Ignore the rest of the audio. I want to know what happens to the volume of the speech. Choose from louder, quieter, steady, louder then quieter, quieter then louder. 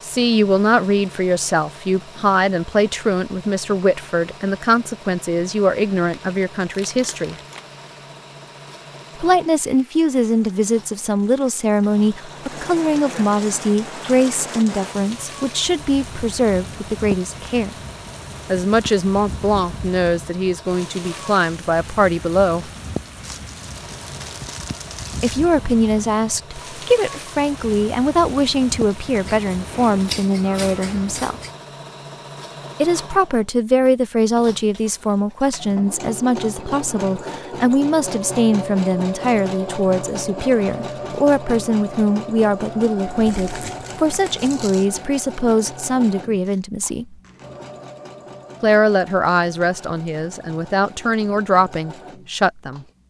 steady.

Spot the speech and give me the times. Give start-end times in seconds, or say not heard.
0.0-7.3, 9.2-17.8, 18.4-22.7, 25.2-31.4, 32.8-47.1, 48.6-52.9.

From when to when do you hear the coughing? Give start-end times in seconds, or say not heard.
not heard.